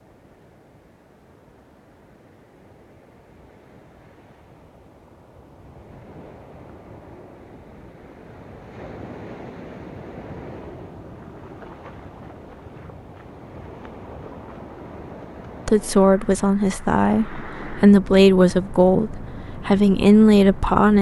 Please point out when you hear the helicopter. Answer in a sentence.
You can't hear the helicopter here.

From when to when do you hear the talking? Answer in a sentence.
The talking can be heard from 15.7 to 20.9 s.